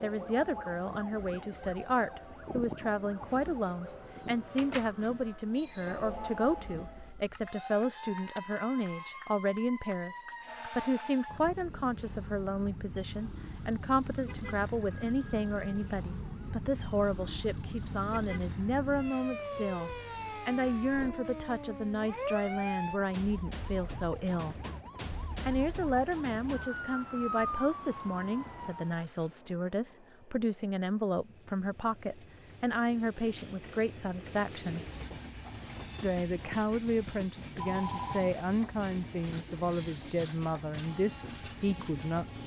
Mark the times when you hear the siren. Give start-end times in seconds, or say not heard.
0.1-29.1.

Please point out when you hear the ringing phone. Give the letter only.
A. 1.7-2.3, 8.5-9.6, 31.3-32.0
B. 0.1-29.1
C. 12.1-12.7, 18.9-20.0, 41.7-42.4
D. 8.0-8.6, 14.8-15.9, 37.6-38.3
D.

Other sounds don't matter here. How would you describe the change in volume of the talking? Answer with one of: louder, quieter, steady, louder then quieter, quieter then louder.
steady.